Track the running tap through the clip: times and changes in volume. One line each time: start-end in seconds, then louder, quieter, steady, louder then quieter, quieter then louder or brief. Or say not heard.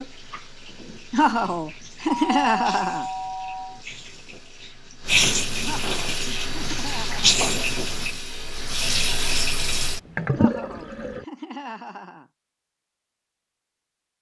0.0-11.2 louder.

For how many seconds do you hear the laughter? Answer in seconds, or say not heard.
6 s.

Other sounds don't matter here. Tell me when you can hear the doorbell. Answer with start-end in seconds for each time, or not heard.
2.1-3.8.